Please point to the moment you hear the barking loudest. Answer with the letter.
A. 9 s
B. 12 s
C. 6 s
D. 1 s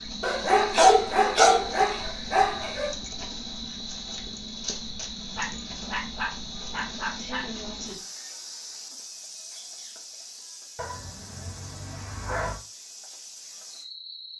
D.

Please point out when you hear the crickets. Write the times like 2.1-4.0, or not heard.
0.0-14.3.